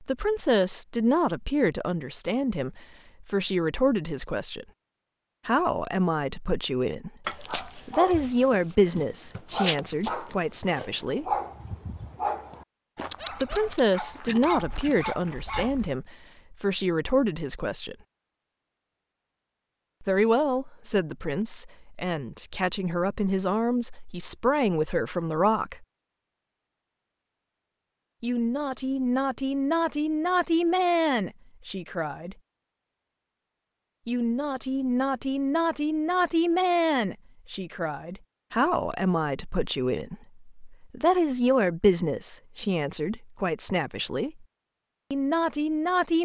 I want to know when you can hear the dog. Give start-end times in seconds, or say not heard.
7.2-15.9.